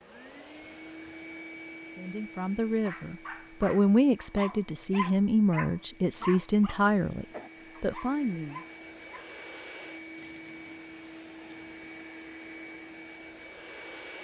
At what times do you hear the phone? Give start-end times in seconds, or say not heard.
not heard.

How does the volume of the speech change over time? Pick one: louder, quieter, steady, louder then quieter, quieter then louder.
louder then quieter.